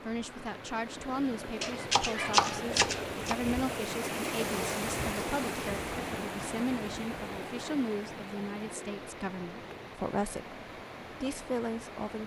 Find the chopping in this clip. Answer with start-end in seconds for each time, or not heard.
1.6-3.4.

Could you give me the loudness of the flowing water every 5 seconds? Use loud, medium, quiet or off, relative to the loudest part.
loud, loud, medium.